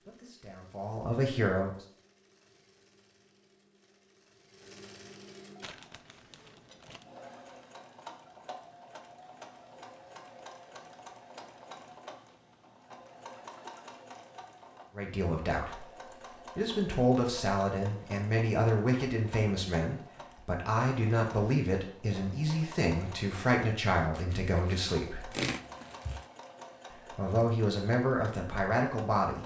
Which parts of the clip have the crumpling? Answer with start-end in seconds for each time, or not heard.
5.6-7.0, 24.1-26.2.